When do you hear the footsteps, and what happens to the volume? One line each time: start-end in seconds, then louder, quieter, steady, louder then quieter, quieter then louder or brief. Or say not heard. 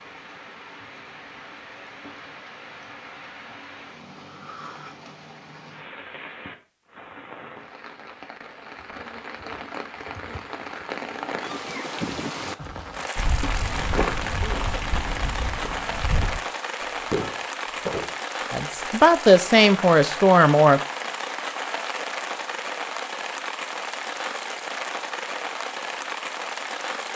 13.2-18.1 quieter then louder.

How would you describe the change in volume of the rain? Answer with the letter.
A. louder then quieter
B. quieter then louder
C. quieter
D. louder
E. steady
D.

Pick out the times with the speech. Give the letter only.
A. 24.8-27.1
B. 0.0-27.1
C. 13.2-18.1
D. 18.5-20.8
D.